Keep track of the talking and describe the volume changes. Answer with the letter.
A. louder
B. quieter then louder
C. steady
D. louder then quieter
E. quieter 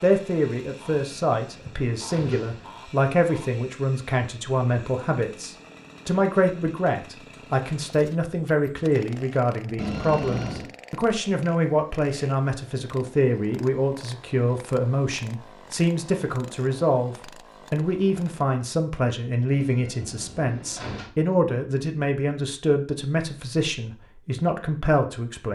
C.